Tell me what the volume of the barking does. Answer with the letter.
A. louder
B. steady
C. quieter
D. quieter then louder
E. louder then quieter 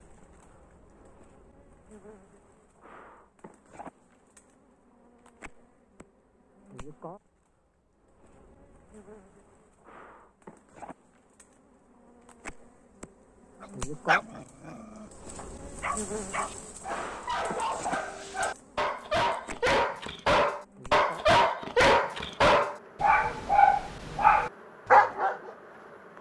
A.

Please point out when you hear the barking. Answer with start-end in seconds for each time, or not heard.
13.6-25.5.